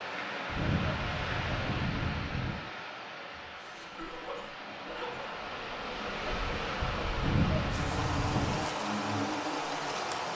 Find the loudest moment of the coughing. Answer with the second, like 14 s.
5 s.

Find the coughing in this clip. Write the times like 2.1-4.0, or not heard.
3.5-5.3.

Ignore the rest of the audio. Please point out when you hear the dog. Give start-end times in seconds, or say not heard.
0.5-2.5, 7.2-8.7.